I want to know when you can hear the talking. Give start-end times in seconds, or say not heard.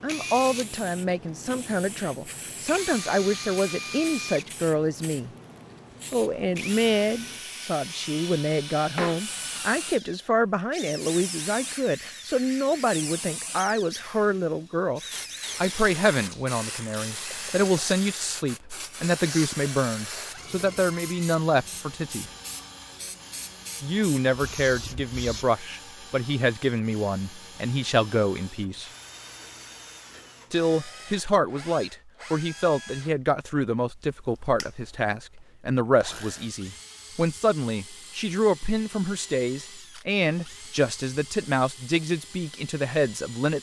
0.0-5.3, 6.1-22.3, 23.8-28.9, 30.5-43.5.